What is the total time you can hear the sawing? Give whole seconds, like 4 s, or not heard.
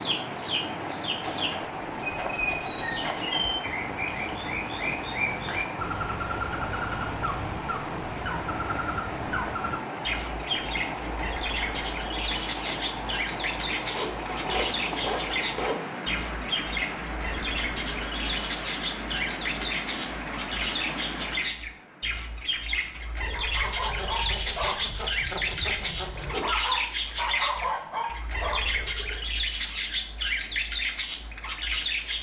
7 s.